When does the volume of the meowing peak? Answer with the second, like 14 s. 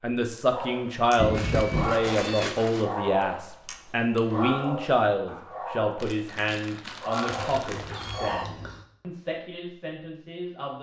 2 s.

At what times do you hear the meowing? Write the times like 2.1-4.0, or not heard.
1.1-2.5, 7.3-8.8.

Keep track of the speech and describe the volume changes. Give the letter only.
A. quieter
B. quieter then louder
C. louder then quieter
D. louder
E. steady
A.